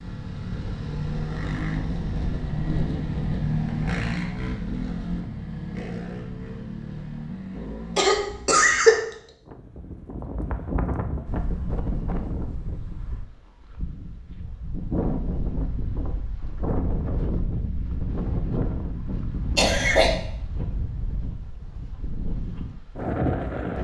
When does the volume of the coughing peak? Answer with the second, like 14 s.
9 s.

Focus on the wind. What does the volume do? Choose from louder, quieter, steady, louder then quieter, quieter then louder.
steady.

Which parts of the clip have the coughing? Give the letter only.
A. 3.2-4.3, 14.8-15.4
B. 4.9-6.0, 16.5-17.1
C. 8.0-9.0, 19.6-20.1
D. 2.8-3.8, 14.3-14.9
C.